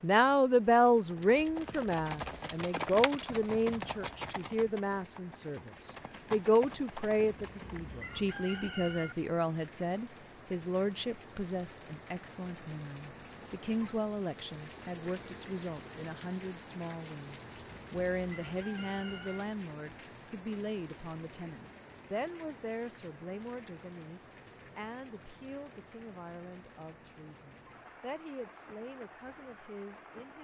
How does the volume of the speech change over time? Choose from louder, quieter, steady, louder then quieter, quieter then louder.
quieter.